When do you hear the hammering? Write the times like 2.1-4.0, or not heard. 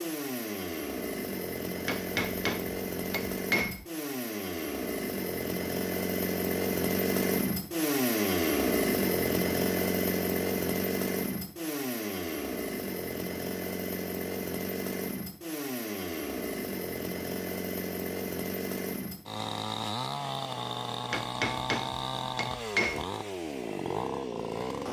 1.9-3.9, 21.1-23.1.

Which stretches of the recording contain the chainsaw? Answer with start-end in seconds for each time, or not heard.
0.0-24.8.